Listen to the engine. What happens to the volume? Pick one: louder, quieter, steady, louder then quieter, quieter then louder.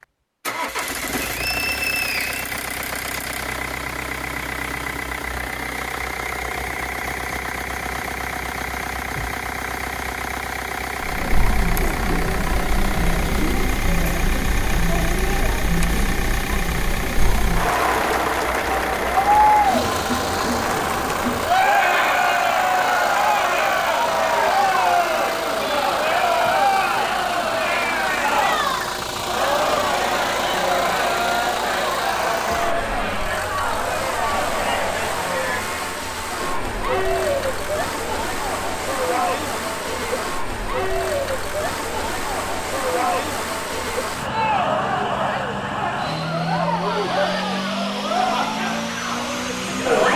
steady.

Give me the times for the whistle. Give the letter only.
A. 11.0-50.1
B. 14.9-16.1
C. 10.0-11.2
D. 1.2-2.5
D.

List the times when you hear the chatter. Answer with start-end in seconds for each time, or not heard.
11.0-50.1.